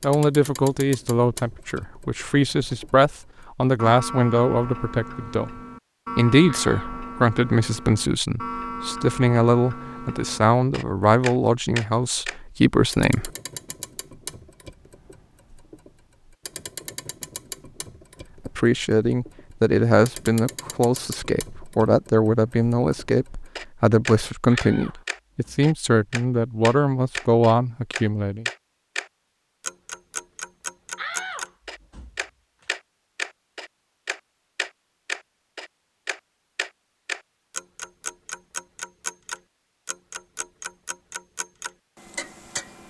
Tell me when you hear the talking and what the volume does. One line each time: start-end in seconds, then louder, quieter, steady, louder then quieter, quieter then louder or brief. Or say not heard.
0.0-13.3 steady
18.4-28.4 steady.